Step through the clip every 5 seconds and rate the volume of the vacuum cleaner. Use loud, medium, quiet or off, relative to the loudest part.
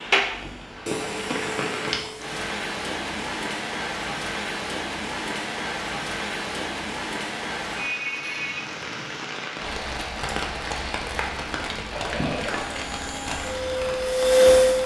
medium, off, loud.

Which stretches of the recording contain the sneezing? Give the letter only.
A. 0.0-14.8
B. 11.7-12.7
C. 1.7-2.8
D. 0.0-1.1
B.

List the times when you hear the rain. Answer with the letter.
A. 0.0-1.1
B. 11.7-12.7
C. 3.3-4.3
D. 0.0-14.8
D.